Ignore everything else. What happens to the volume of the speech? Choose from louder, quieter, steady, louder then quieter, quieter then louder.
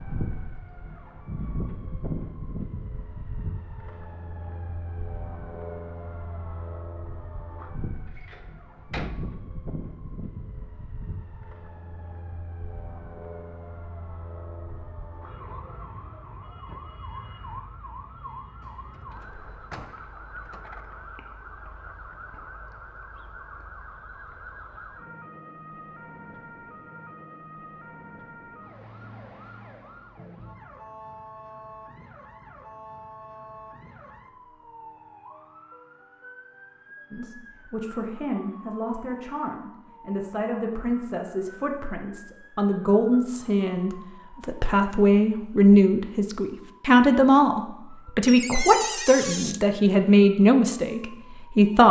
louder.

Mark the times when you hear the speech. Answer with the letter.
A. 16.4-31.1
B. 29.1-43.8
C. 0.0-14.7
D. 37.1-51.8
D.